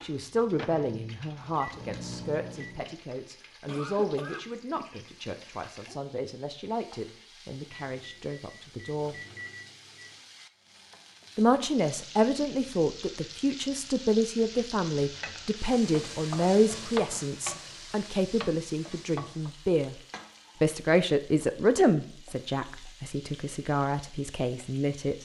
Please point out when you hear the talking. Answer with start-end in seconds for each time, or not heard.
0.0-9.2, 11.3-19.9, 20.6-25.2.